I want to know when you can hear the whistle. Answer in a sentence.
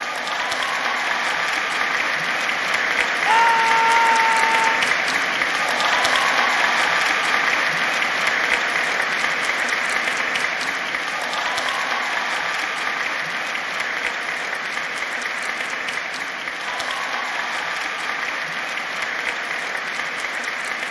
The whistle can't be heard in this clip.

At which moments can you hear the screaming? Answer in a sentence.
You can hear the screaming from 3.2 to 4.8 s.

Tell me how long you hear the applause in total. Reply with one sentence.
The applause can be heard for 21 seconds in total.